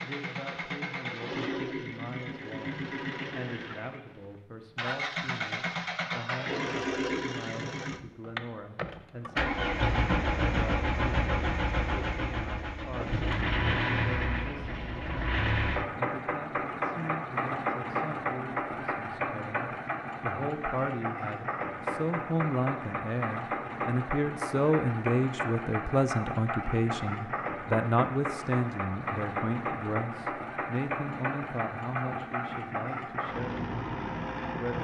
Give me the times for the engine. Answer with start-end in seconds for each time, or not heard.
0.0-34.7.